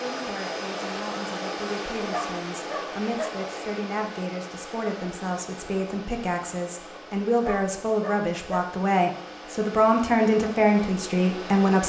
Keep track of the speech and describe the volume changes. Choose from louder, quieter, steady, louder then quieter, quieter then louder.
louder.